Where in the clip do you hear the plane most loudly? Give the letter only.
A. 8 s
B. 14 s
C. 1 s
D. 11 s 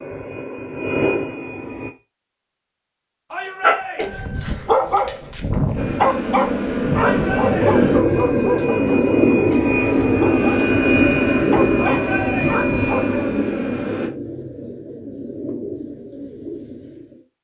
D.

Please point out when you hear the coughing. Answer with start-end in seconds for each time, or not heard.
not heard.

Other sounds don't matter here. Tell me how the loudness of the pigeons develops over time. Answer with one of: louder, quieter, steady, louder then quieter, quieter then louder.
quieter.